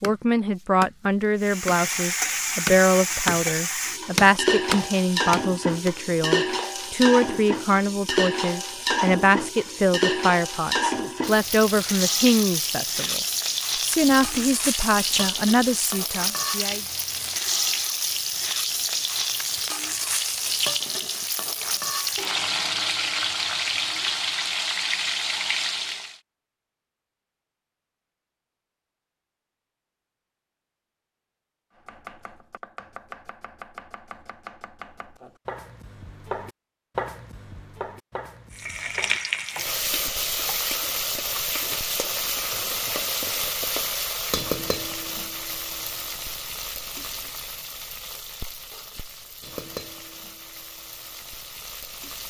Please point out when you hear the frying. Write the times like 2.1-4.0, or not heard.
1.4-26.1, 38.5-52.2.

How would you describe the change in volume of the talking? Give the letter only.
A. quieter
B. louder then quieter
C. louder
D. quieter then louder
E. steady
E.